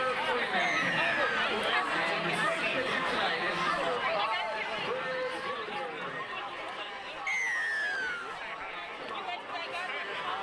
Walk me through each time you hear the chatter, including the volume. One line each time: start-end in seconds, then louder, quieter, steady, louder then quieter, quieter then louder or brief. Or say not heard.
0.0-10.3 quieter.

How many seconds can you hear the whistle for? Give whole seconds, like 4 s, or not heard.
2 s.